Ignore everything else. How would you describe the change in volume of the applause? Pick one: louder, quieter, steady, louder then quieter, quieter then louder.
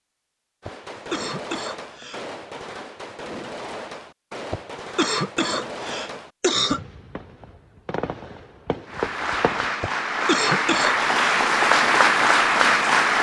louder.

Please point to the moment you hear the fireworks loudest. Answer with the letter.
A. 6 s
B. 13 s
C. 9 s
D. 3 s
C.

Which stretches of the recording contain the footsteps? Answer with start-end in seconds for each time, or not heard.
not heard.